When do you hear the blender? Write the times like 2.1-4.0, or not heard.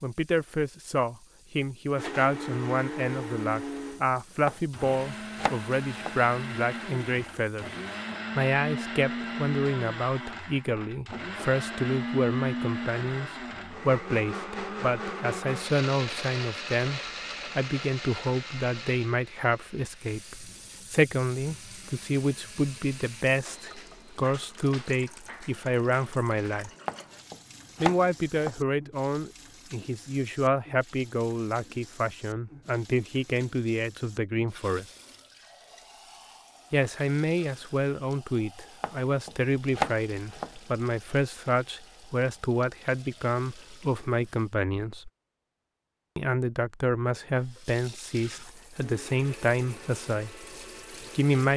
1.9-23.2, 48.8-51.4.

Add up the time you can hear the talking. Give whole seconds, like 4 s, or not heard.
47 s.